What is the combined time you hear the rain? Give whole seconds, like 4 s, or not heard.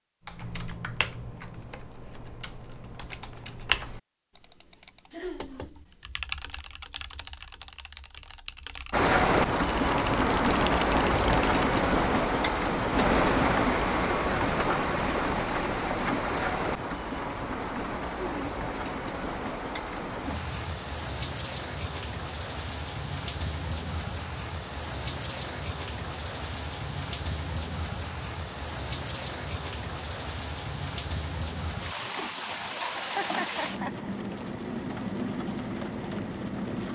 28 s.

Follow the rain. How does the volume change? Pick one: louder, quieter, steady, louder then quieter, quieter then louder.
quieter.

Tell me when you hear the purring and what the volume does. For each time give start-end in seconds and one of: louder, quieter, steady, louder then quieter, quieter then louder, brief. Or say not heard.
not heard.